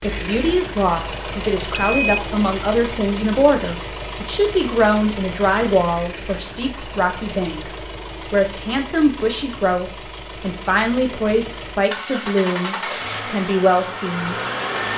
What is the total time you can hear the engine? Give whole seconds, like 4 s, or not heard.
15 s.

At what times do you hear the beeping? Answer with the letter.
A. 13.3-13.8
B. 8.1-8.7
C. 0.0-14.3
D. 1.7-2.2
D.